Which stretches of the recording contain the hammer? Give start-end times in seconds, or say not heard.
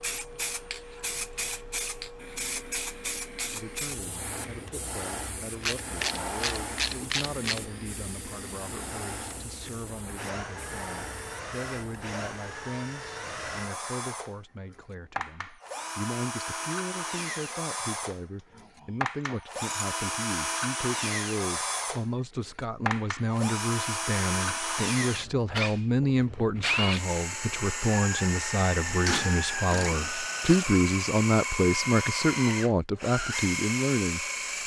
not heard.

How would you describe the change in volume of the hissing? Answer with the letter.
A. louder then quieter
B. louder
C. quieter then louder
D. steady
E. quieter
E.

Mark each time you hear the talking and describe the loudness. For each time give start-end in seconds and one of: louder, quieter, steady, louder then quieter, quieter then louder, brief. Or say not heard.
3.5-34.6 louder.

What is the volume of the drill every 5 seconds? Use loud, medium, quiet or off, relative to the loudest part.
quiet, quiet, medium, loud, loud, loud, loud.